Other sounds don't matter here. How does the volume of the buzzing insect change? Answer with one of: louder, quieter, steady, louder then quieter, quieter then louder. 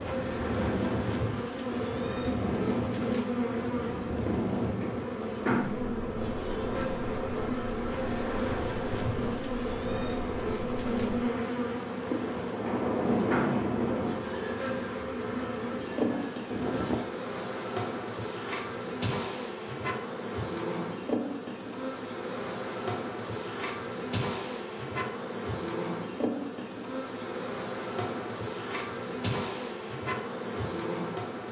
steady.